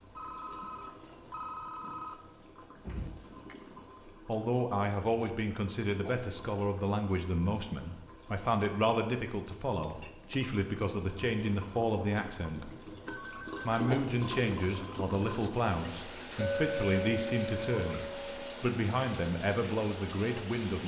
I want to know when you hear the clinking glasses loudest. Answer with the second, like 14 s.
17 s.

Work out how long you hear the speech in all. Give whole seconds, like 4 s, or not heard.
16 s.